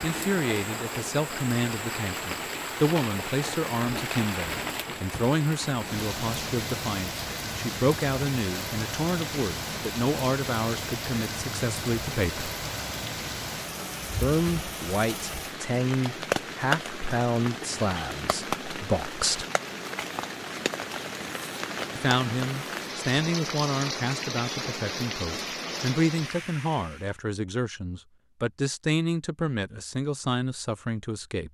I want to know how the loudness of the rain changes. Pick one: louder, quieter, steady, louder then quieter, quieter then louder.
steady.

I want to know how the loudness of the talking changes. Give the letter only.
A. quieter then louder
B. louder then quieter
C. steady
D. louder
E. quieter
C.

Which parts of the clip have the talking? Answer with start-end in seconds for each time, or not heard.
0.0-12.5, 14.2-19.4, 21.9-31.4.